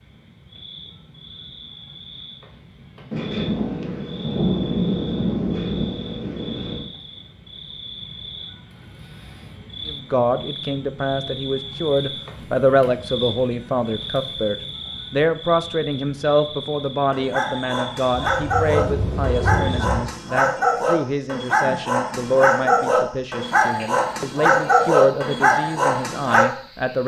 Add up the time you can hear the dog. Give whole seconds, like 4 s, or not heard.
9 s.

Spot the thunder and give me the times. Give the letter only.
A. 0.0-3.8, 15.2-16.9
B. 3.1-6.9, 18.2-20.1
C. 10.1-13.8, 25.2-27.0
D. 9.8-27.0
B.